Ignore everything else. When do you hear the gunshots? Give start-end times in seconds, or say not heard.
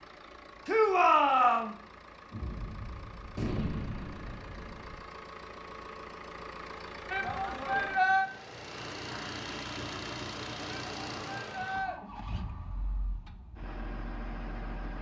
2.3-5.0.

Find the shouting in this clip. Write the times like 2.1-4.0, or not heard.
0.7-1.8, 7.1-8.3, 10.7-11.9.